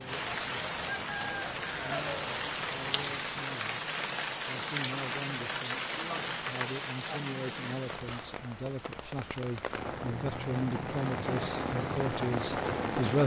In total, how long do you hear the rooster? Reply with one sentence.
You can hear the rooster for 2 seconds altogether.